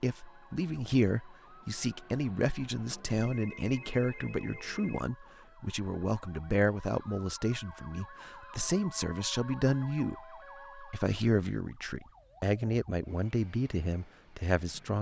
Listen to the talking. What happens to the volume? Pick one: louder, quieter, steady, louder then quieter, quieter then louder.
steady.